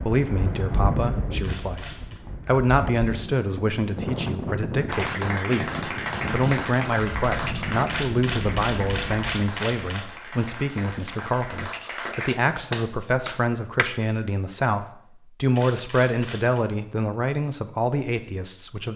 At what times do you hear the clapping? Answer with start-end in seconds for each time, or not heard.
4.8-13.8.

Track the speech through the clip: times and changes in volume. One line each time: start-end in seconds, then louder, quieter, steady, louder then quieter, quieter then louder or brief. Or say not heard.
0.0-18.9 steady.